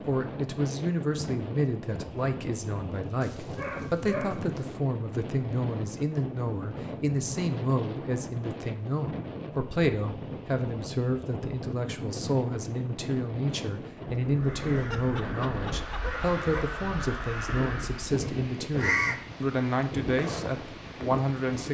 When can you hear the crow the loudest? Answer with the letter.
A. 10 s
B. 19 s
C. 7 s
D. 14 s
B.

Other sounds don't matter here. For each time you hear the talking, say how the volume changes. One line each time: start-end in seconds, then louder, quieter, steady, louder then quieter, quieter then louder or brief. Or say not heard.
0.1-21.6 steady.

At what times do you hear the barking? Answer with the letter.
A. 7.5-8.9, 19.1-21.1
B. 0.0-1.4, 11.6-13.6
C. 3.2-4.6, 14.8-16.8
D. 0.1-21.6
C.